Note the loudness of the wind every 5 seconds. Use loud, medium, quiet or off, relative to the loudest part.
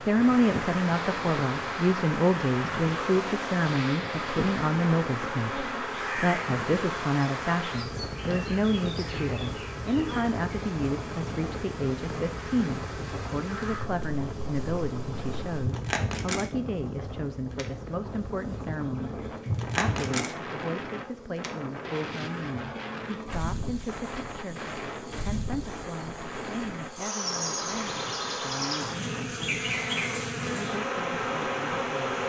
loud, loud, medium, medium, medium, medium, medium.